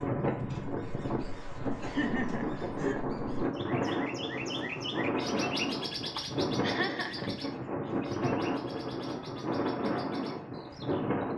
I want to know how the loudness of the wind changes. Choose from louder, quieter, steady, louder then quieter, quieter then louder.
steady.